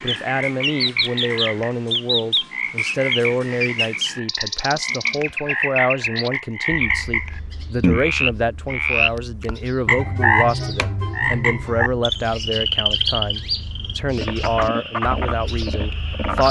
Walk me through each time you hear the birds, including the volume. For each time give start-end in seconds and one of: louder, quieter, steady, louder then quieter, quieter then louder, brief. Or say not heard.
0.0-16.4 quieter then louder.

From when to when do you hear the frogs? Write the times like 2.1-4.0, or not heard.
0.0-16.4.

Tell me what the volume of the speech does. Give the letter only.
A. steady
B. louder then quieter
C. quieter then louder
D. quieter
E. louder
A.